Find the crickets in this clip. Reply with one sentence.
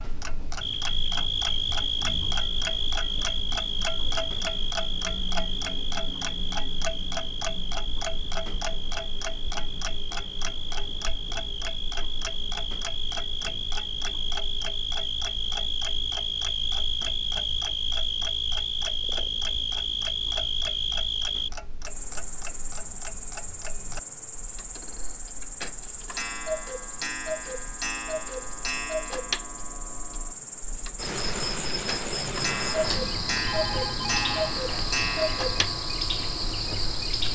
The crickets can be heard from 0.2 to 37.3 s.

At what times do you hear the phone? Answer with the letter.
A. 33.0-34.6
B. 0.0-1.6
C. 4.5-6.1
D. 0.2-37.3
A.